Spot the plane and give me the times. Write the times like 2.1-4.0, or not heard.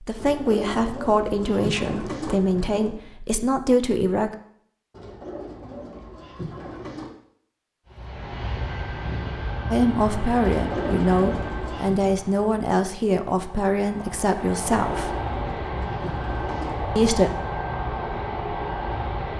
7.8-19.3.